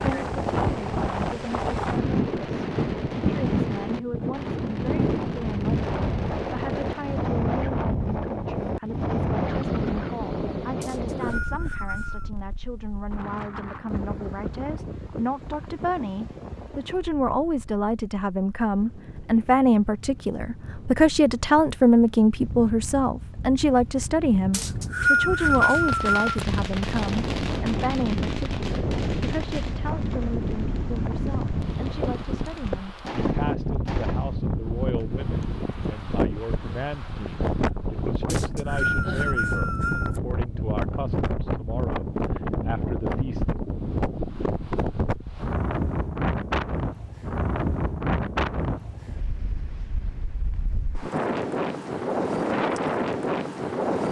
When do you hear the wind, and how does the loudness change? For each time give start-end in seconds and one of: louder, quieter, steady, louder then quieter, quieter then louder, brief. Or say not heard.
0.0-54.0 quieter then louder.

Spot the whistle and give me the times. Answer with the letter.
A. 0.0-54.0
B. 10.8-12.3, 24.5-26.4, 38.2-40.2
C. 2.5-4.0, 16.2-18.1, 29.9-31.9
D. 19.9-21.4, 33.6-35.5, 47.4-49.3
B.